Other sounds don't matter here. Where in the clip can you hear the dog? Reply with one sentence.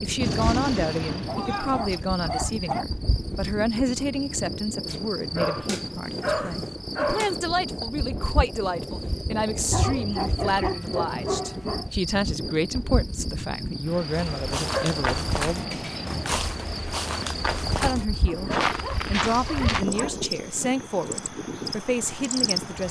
The dog can be heard from 1.2 to 2.9 s, from 4.8 to 7.4 s, from 9.7 to 11.8 s, from 14.7 to 16.1 s and from 18.2 to 20.2 s.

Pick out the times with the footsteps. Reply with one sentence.
The footsteps can be heard from 14.1 to 19.9 s.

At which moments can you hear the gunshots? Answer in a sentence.
The gunshots can be heard from 0.2 to 1.8 s.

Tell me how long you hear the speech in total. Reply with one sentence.
You can hear the speech for 21 seconds altogether.